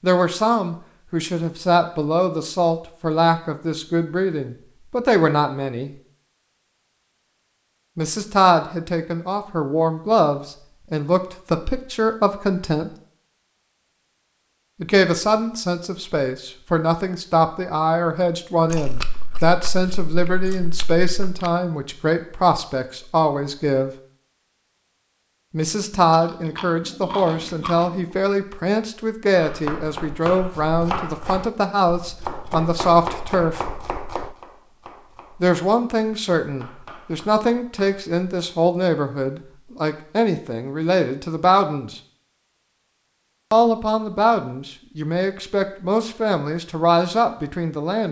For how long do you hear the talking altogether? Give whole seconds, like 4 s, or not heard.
39 s.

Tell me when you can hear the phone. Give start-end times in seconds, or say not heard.
not heard.